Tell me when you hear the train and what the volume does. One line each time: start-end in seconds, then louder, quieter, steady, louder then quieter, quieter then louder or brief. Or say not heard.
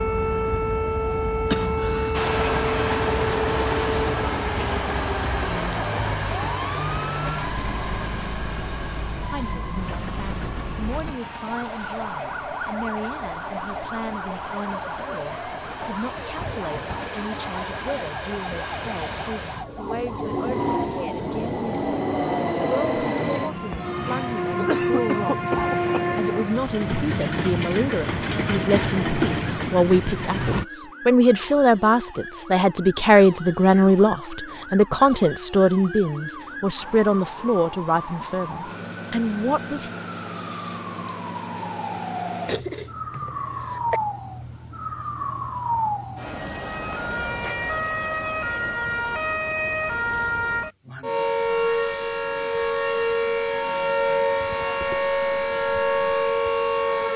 2.1-30.6 quieter then louder.